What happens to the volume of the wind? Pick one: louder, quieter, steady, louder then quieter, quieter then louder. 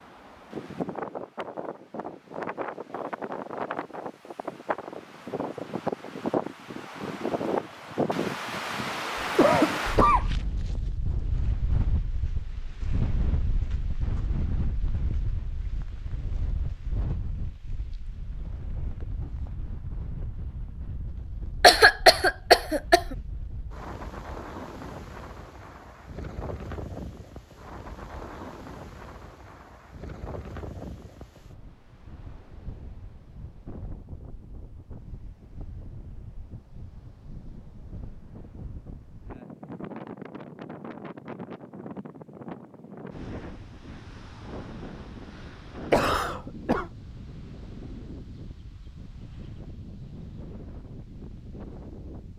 quieter.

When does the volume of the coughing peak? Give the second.
22 s.